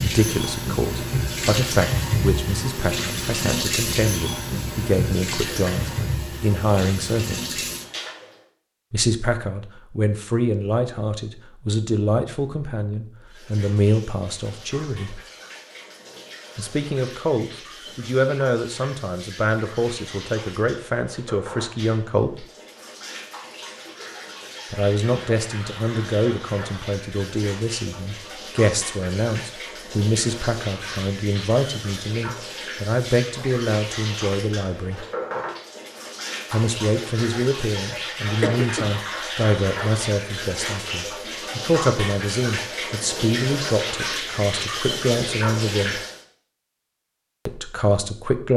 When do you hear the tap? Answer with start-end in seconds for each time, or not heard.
0.0-8.4, 13.2-46.2.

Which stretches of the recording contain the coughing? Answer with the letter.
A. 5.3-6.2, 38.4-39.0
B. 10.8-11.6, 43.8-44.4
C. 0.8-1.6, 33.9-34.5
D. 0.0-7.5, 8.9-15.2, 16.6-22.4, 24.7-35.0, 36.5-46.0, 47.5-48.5
A.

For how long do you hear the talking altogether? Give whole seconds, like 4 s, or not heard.
41 s.